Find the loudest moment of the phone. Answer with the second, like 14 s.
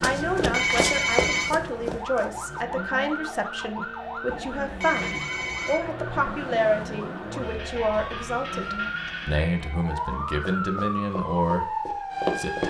1 s.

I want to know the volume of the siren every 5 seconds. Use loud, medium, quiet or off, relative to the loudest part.
medium, medium, loud.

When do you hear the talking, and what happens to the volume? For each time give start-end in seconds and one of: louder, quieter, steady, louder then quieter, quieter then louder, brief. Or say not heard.
0.0-12.6 steady.